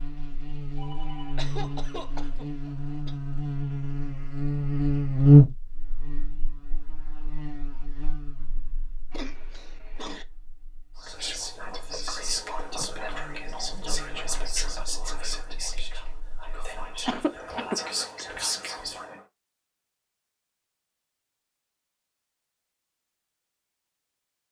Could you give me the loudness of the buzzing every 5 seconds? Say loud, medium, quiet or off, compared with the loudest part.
medium, loud, quiet, quiet, off.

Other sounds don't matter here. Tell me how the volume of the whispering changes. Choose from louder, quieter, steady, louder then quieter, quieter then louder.
quieter then louder.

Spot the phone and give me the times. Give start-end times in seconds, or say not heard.
0.7-1.4.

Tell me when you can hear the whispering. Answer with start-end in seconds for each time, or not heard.
10.9-19.2.